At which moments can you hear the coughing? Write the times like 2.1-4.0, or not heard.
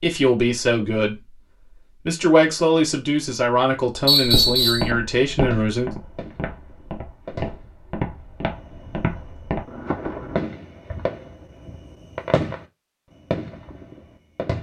not heard.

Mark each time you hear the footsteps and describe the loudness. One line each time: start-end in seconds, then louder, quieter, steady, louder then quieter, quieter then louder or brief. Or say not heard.
4.2-10.4 quieter then louder.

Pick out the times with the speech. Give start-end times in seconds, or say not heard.
0.0-1.4, 2.0-6.0.